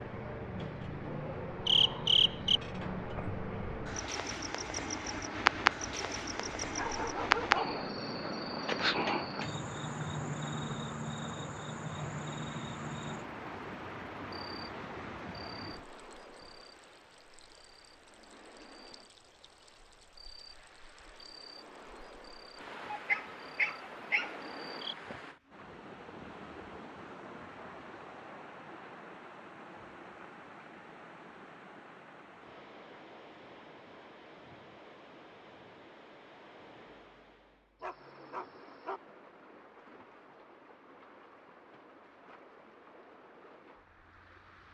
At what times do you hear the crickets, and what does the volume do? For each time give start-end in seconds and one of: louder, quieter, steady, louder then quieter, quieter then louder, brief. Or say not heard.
0.0-24.9 quieter.